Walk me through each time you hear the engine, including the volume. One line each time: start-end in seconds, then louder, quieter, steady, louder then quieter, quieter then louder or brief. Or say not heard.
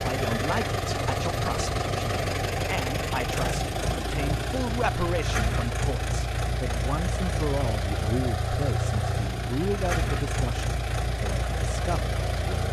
0.0-12.6 steady.